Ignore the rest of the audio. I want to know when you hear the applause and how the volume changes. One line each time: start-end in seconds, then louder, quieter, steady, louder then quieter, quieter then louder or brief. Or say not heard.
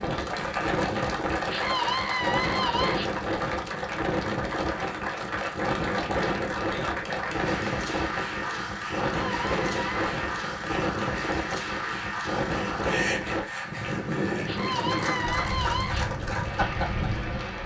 0.0-17.6 steady.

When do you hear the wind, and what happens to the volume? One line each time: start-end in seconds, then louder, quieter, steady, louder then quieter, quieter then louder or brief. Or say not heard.
0.0-17.6 steady.